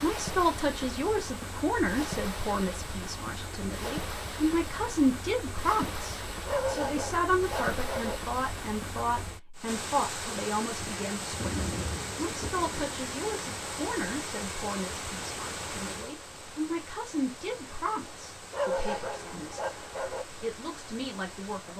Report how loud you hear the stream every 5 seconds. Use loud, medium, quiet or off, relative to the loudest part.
loud, loud, loud, medium, medium.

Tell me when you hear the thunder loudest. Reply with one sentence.
The volume of the thunder peaks at 12 seconds.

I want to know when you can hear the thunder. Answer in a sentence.
You can hear the thunder from 10.8 to 13.5 s.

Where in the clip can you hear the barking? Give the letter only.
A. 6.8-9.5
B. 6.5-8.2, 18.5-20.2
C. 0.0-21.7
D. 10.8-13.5
B.